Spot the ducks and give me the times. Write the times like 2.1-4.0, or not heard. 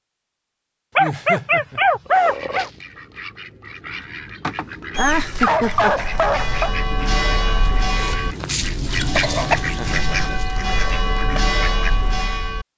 2.2-12.2.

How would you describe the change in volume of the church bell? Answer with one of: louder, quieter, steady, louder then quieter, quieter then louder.
quieter then louder.